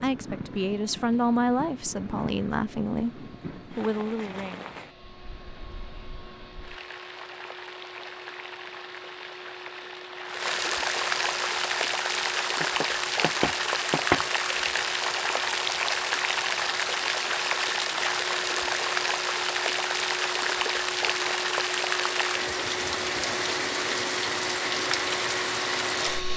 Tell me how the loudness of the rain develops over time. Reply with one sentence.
The volume of the rain goes up.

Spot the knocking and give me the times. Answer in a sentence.
The knocking can be heard from 12.6 to 14.2 s.